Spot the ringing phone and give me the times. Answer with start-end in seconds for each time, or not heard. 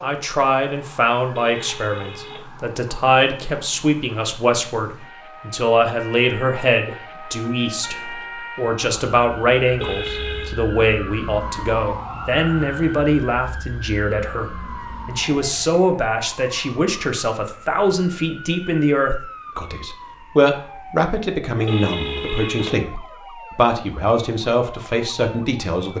1.4-2.5, 9.8-10.6, 21.6-22.7.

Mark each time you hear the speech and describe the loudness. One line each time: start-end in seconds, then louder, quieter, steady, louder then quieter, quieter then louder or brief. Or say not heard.
0.0-25.9 steady.